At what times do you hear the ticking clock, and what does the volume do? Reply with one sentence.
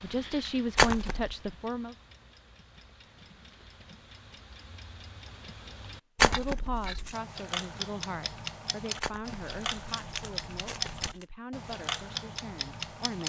The ticking clock can be heard from 0.0 to 13.2 s, getting louder.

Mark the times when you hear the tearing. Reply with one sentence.
You can hear the tearing from 0.8 to 1.4 s, from 6.2 to 7.2 s and from 9.0 to 11.2 s.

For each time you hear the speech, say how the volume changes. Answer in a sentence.
You can hear the speech briefly from 0.0 to 1.9 s; and from 6.2 to 13.2 s, getting quieter.